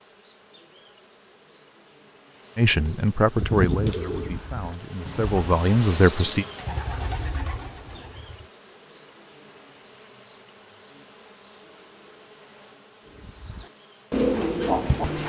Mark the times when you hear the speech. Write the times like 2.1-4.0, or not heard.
2.5-6.5.